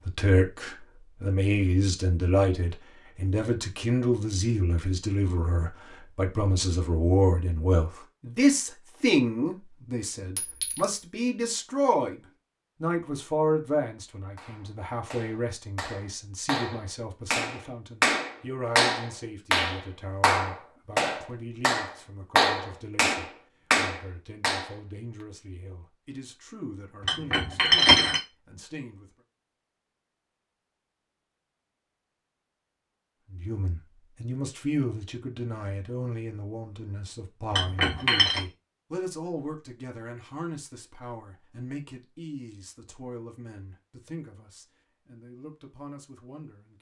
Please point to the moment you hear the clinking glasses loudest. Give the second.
28 s.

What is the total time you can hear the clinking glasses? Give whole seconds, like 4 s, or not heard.
3 s.